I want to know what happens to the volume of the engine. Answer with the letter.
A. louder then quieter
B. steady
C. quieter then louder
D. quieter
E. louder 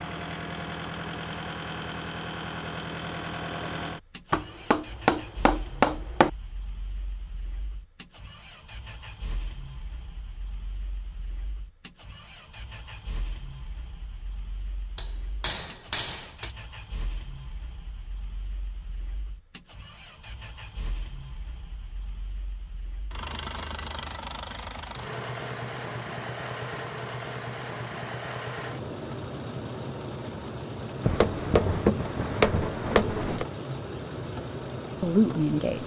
C.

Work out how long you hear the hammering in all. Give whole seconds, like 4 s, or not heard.
6 s.